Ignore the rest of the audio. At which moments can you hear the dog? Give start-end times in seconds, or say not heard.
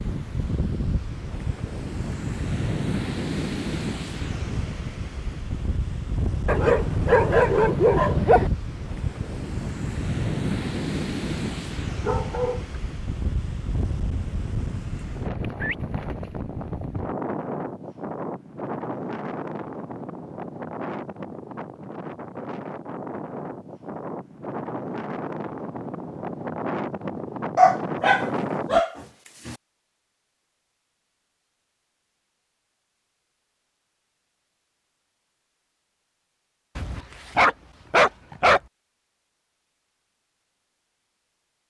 6.5-8.5, 12.0-12.7, 27.6-29.6, 36.8-38.6.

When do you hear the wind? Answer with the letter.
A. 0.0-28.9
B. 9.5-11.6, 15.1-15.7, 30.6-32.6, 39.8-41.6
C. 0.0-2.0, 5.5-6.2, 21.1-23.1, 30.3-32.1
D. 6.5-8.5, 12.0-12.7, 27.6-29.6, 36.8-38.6
A.